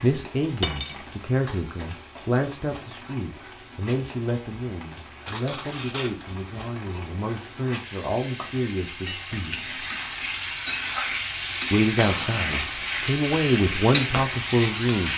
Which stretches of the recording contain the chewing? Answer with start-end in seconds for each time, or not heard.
not heard.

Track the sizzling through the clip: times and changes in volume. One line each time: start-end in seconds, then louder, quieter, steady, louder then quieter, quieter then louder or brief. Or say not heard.
0.0-15.1 louder.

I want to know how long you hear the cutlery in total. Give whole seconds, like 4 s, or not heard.
2 s.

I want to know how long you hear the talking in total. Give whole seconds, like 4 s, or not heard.
13 s.